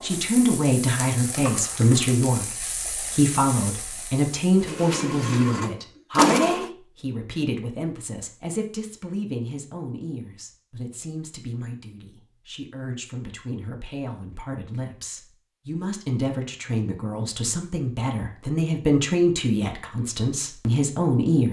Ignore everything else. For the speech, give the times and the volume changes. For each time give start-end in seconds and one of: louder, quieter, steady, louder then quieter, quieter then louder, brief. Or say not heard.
0.0-21.4 quieter then louder.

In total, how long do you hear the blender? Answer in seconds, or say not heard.
2 s.